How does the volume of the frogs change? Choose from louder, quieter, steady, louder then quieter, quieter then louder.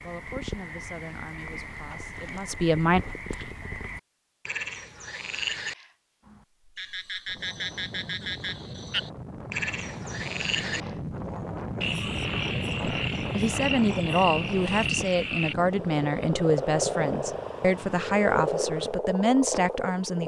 louder.